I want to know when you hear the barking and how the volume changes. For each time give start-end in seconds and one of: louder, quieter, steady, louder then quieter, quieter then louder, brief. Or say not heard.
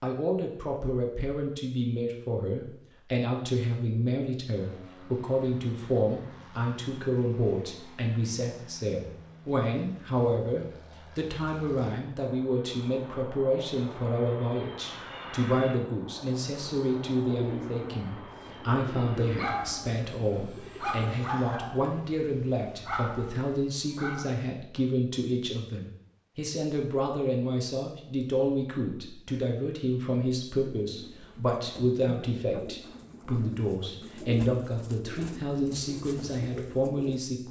19.2-24.4 louder then quieter.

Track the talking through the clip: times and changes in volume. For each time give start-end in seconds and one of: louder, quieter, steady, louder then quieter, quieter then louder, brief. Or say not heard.
0.0-37.4 steady.